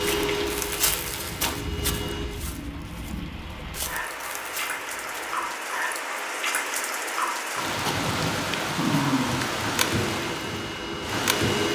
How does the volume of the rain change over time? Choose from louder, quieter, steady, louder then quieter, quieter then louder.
louder.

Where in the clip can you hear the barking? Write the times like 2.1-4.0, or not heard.
8.8-9.6.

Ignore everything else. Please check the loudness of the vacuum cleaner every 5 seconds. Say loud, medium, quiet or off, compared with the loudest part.
loud, off, loud.